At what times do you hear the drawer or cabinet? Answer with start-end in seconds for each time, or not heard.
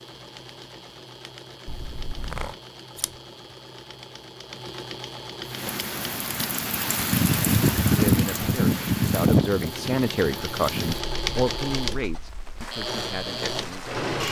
not heard.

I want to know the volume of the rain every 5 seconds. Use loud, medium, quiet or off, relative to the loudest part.
off, loud, quiet.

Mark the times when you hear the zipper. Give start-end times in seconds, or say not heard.
1.6-2.5.